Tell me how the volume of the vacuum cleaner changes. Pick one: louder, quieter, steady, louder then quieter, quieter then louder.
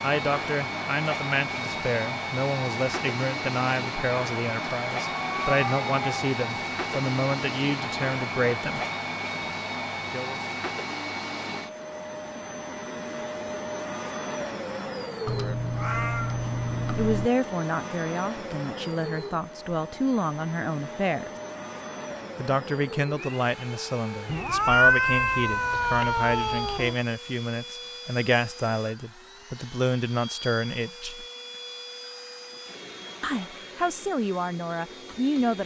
quieter.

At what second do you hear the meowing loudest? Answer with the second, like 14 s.
25 s.